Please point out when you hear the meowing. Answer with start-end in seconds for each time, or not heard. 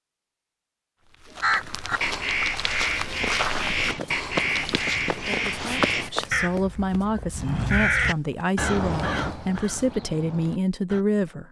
not heard.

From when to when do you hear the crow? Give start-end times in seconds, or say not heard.
1.4-11.1.